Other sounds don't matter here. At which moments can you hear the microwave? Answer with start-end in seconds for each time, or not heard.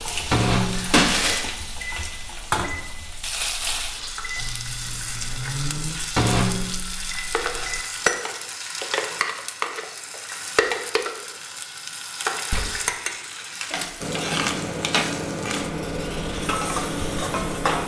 0.1-7.8, 14.0-17.8.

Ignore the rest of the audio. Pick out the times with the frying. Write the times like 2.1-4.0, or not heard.
0.0-17.8.